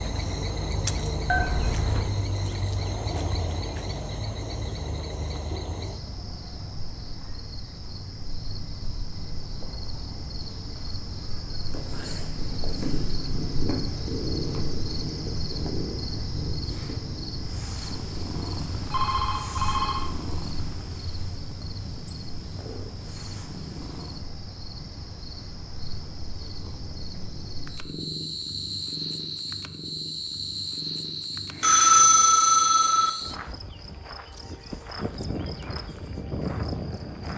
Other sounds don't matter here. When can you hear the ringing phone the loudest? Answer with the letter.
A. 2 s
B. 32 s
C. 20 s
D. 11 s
B.